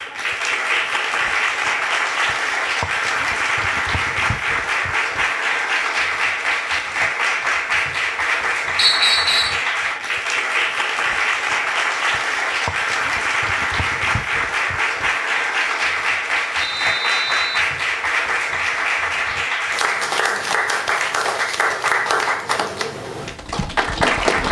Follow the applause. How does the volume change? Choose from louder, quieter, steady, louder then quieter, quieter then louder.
steady.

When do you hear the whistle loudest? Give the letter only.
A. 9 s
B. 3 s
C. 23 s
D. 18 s
A.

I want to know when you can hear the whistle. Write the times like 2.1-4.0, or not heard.
8.8-9.6, 16.6-17.7.